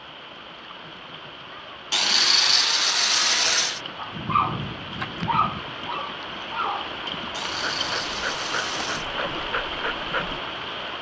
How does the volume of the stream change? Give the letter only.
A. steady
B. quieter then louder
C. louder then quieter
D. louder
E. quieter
D.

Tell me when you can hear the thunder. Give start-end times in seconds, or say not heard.
4.1-5.7.